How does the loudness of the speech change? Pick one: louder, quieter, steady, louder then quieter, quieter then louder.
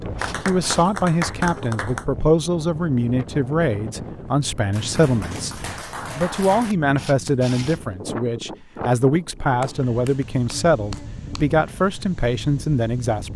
steady.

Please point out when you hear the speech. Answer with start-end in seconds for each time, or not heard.
0.0-13.3.